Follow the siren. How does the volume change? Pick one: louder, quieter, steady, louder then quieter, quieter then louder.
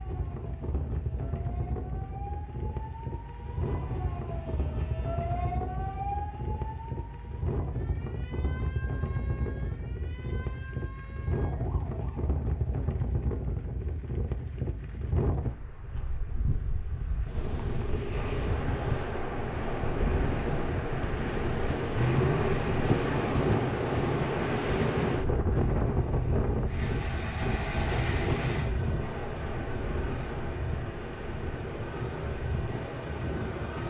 louder then quieter.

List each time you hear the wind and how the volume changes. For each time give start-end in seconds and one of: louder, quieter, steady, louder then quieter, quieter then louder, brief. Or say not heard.
0.0-33.8 louder then quieter.